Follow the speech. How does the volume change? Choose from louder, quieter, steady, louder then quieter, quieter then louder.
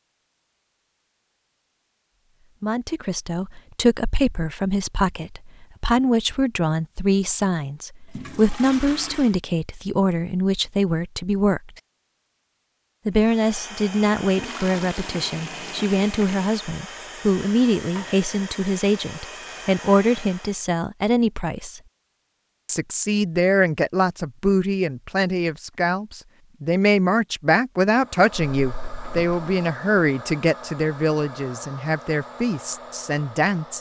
steady.